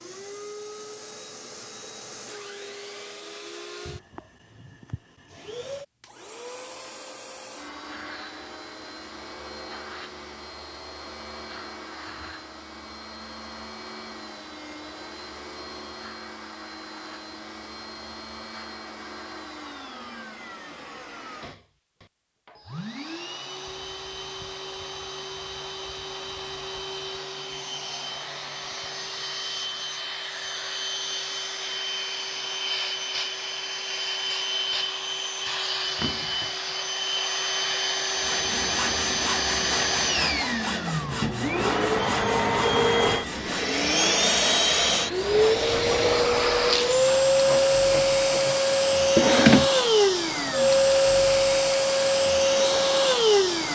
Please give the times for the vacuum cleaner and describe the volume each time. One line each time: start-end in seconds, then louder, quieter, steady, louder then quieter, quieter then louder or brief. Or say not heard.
0.0-53.7 louder.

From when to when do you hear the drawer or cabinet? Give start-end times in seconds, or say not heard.
49.1-49.7.